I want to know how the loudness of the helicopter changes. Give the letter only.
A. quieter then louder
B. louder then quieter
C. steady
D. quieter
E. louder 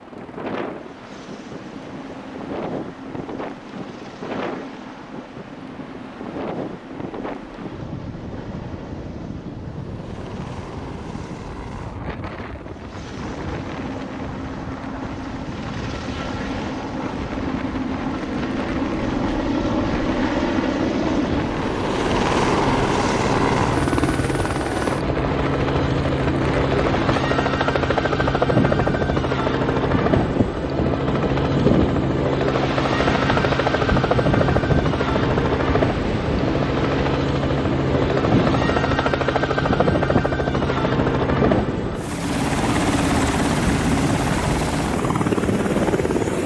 E.